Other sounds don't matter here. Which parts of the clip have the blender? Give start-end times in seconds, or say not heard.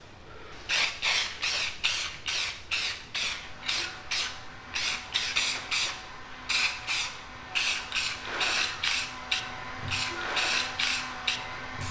3.4-11.8.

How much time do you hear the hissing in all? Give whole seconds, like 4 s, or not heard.
12 s.